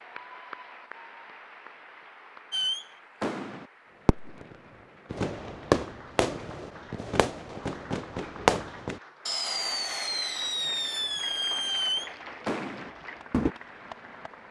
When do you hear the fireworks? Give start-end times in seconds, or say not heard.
2.5-13.6.